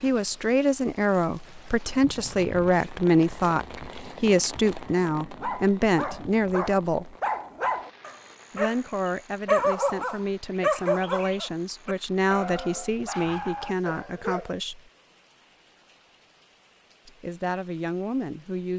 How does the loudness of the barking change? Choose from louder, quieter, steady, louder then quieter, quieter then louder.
louder then quieter.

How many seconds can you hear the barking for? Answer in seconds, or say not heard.
9 s.